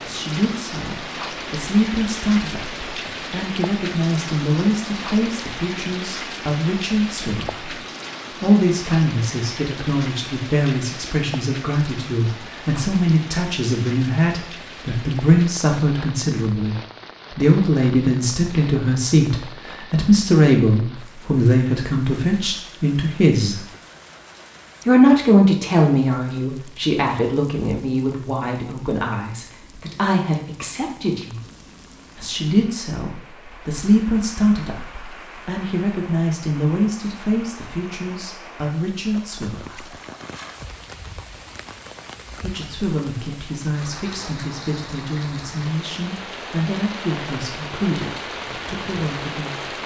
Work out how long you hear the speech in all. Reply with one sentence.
You can hear the speech for 45 seconds altogether.